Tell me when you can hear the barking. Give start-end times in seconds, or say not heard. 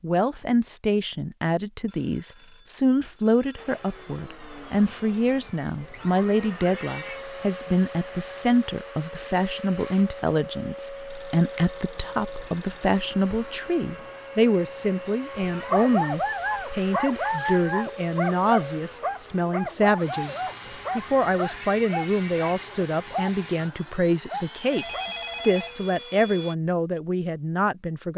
15.7-25.1.